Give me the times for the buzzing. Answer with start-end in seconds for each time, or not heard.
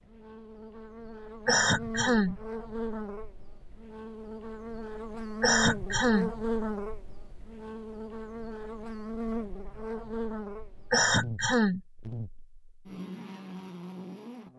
0.0-14.5.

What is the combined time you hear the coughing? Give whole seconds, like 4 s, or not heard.
3 s.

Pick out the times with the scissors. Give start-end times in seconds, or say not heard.
not heard.